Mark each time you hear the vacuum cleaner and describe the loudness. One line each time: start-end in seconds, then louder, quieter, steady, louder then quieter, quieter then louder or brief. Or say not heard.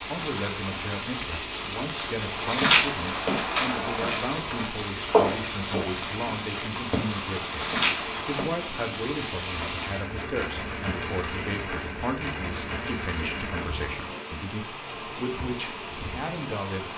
not heard.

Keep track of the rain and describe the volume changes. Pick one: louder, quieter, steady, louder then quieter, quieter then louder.
steady.